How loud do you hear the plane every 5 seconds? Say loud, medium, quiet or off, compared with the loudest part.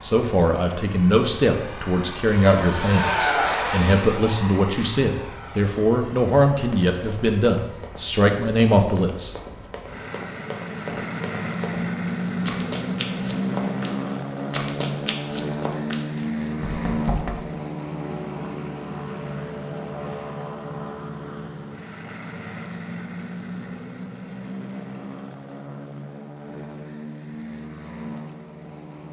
loud, quiet, loud, loud, medium, medium.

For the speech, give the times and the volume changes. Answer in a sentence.
The speech can be heard from 0.0 to 9.3 s, at a steady volume.